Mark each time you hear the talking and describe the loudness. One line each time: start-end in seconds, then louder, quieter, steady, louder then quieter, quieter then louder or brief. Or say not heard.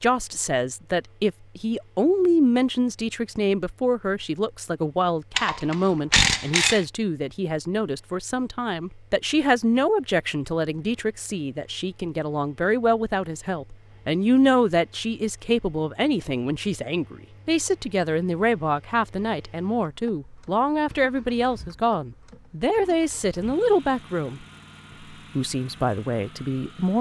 0.0-24.4 steady
25.4-26.9 brief.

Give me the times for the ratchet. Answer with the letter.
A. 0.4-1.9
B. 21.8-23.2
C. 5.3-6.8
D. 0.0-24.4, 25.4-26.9
C.